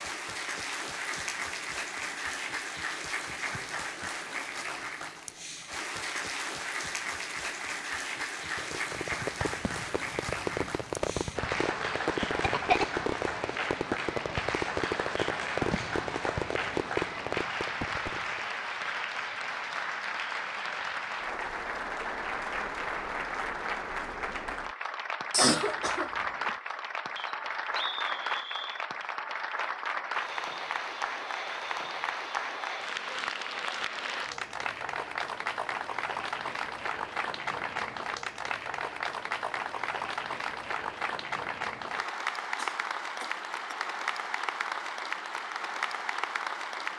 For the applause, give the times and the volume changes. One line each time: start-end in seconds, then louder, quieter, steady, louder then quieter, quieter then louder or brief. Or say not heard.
0.0-46.9 steady.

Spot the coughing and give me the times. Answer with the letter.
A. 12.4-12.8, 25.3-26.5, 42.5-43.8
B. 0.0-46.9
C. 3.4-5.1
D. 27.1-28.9
A.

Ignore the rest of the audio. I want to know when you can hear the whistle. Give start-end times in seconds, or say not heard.
27.1-28.9.